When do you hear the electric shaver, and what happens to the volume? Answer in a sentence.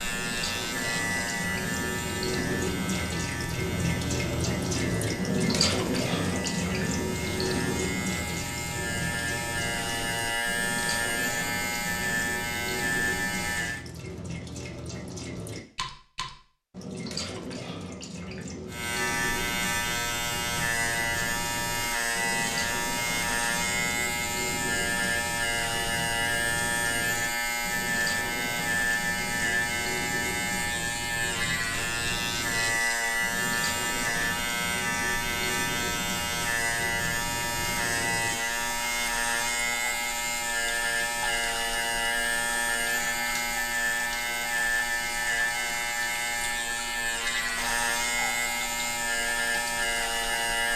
You can hear the electric shaver from 0.0 to 13.8 s, getting quieter then louder; and from 18.6 to 50.7 s, at a steady volume.